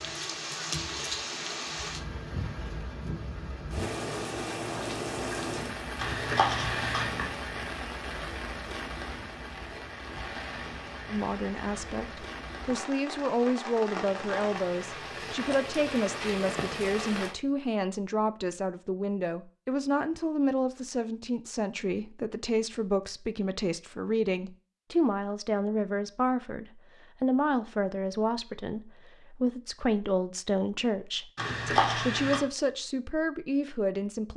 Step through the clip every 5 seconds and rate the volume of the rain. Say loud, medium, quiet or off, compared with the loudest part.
loud, loud, loud, loud, off, off, off.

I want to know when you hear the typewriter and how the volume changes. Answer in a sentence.
You can't hear the typewriter here.